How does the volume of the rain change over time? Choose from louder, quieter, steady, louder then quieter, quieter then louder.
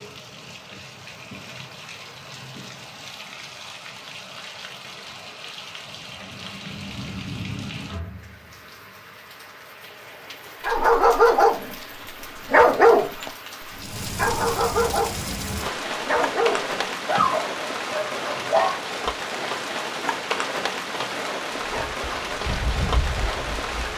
louder.